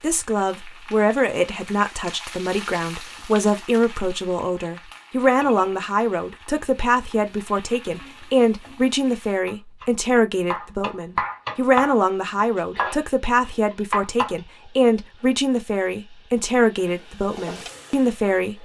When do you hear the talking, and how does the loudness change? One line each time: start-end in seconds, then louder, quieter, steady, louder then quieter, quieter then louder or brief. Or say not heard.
0.0-18.6 steady.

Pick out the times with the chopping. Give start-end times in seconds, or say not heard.
9.4-11.9, 12.6-14.3.